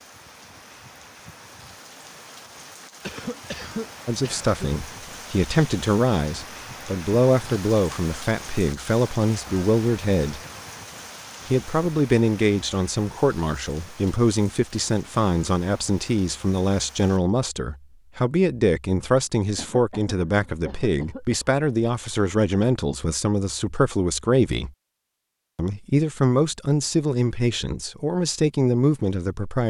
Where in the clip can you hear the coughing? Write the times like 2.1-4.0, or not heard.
3.0-4.7, 19.6-21.5.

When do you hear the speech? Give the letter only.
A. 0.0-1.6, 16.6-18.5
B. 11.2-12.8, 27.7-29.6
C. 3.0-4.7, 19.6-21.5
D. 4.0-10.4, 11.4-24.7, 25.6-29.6
D.